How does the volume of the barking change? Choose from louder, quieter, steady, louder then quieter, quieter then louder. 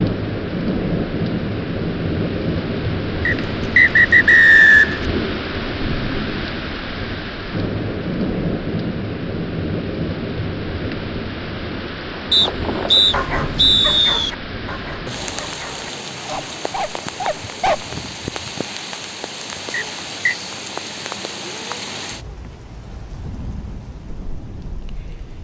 quieter then louder.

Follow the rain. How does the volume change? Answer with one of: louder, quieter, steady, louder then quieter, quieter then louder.
quieter.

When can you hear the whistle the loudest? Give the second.
5 s.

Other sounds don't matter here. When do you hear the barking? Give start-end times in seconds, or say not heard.
12.2-17.9.